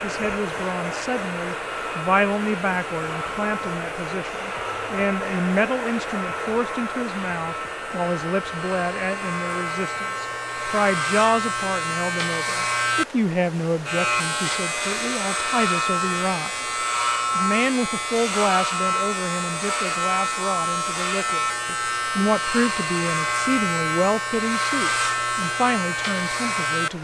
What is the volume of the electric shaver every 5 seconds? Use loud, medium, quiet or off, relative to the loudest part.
medium, medium, loud, loud, loud, loud.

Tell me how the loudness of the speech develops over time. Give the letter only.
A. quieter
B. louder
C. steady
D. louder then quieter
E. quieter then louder
C.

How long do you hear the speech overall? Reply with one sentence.
You can hear the speech for 26 seconds altogether.